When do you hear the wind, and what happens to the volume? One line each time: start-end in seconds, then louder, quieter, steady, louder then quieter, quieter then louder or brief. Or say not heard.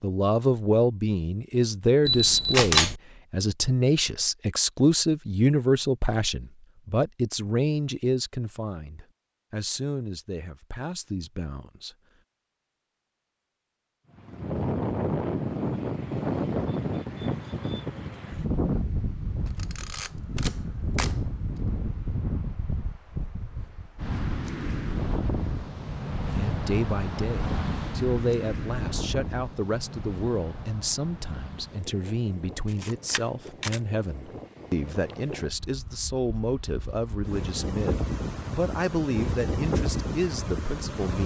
14.2-41.2 quieter then louder.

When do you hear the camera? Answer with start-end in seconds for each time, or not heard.
2.0-3.0, 19.4-21.1, 32.6-33.8.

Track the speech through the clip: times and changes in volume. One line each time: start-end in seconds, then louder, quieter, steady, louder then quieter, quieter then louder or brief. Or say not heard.
0.0-11.9 quieter
26.4-41.2 steady.